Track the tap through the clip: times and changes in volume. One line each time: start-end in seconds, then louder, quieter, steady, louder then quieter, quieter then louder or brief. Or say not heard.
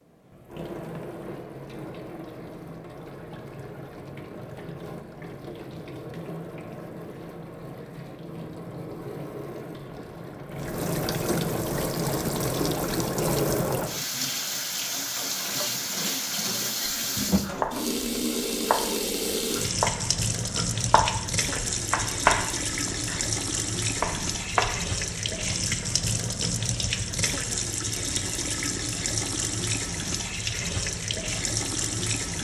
0.0-32.3 louder.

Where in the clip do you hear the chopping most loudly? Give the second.
22 s.